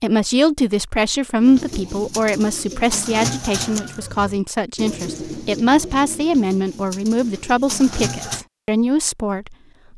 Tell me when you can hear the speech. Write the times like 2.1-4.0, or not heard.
0.0-9.6.